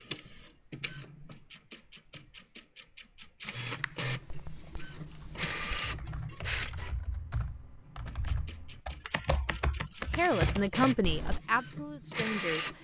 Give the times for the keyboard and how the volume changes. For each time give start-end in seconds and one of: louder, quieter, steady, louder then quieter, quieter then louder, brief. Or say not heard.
3.7-11.4 louder.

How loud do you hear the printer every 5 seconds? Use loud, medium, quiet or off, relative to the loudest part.
medium, loud, loud.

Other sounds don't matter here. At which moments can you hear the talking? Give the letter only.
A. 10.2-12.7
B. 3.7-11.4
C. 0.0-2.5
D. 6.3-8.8
A.